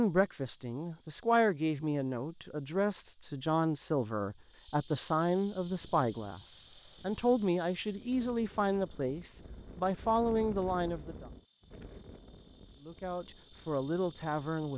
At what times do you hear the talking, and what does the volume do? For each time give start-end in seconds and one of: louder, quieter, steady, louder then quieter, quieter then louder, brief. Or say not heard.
0.0-11.2 steady
12.8-14.7 brief.